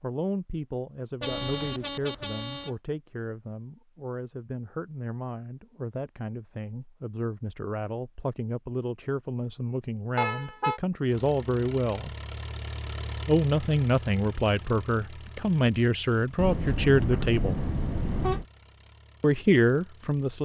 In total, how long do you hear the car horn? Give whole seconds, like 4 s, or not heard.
4 s.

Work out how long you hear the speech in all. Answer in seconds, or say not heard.
18 s.